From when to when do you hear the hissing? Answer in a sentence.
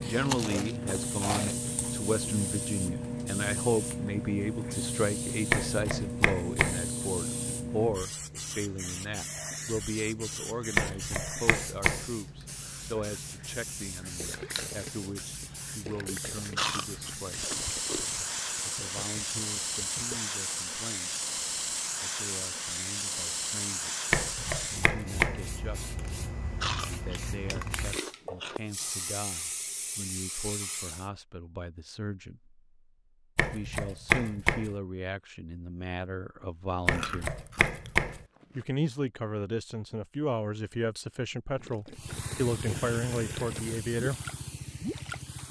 You can hear the hissing from 0.0 to 31.1 s and from 41.9 to 45.4 s.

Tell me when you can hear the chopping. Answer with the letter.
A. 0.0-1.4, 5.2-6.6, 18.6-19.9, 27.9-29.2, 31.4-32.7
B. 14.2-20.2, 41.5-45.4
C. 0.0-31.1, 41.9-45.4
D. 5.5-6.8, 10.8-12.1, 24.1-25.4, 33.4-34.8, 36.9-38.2
D.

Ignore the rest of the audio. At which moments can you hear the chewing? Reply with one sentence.
The chewing can be heard from 0.1 to 1.8 s, from 16.6 to 18.1 s, from 26.6 to 28.6 s and from 36.9 to 38.6 s.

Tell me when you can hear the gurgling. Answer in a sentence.
You can hear the gurgling from 14.2 to 20.2 s and from 41.5 to 45.4 s.